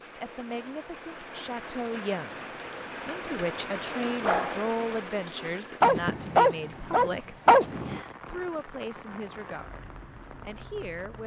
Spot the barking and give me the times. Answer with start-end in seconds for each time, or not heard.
4.2-8.0.